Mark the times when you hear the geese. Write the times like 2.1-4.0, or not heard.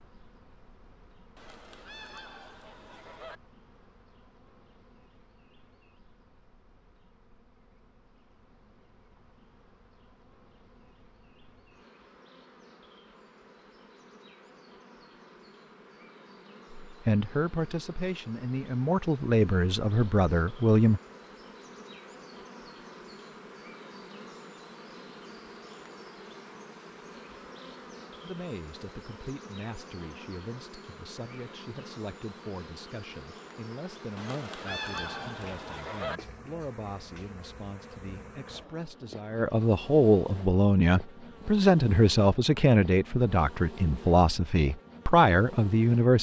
1.4-3.4, 34.1-36.2.